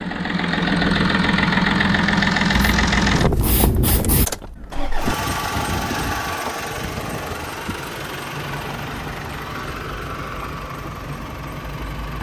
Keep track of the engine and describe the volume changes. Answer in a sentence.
The loudness of the engine goes down.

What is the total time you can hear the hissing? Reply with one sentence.
You can hear the hissing for 2 seconds altogether.